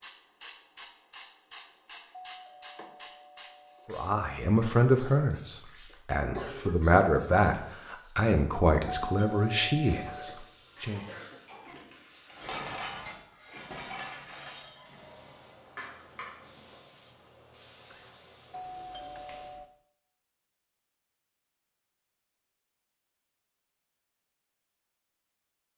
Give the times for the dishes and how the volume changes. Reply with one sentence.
You can hear the dishes from 11.6 to 16.8 s, getting quieter then louder.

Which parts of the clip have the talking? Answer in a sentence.
The talking can be heard from 3.9 to 11.0 s.